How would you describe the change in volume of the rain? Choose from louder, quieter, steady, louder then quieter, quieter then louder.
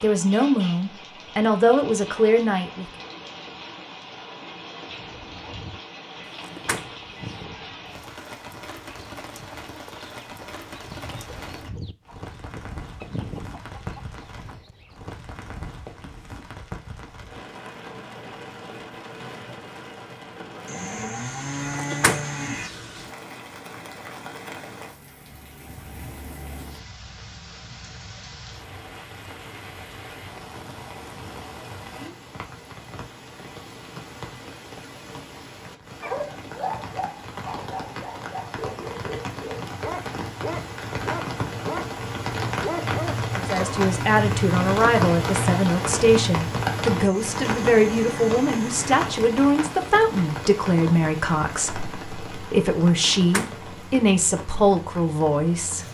louder.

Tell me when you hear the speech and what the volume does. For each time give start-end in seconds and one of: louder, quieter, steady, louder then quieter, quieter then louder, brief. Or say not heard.
0.0-2.9 brief
43.4-55.8 steady.